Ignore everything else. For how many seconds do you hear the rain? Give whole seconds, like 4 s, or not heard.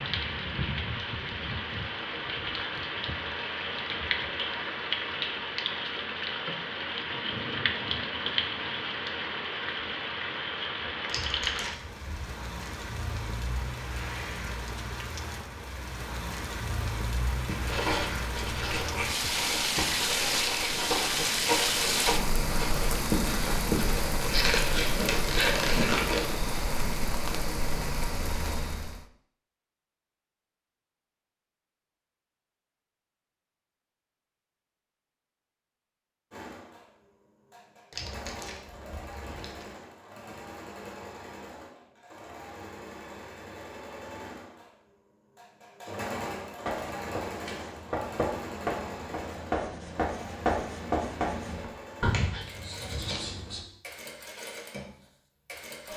29 s.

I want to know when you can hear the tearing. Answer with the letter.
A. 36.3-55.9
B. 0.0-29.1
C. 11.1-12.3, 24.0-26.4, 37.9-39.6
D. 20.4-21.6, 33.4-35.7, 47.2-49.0
C.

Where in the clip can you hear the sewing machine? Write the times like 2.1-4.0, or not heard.
36.3-55.9.